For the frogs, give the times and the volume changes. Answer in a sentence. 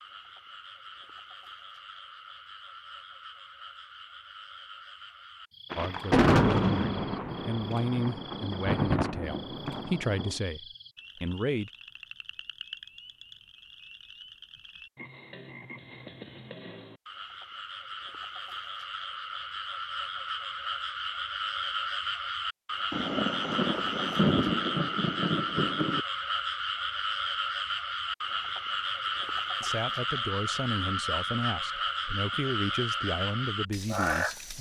You can hear the frogs from 0.0 to 34.5 s, getting louder.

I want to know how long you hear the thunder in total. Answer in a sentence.
You can hear the thunder for 8 seconds altogether.